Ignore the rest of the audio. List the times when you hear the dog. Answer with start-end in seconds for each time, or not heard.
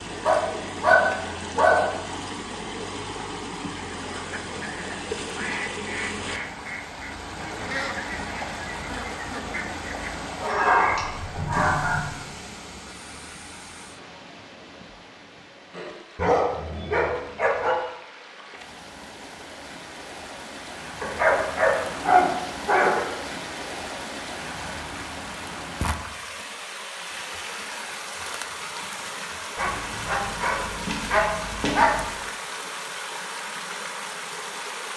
0.2-1.9, 10.4-12.1, 15.7-17.8, 21.0-23.0, 29.6-32.1.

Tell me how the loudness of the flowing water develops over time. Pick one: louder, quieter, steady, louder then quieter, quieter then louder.
quieter then louder.